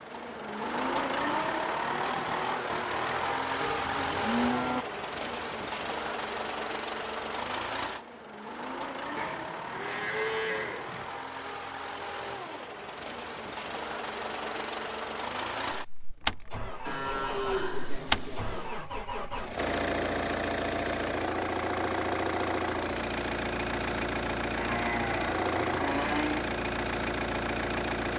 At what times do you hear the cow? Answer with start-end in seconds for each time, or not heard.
3.6-4.8, 9.2-11.1, 16.9-18.8, 24.6-26.5.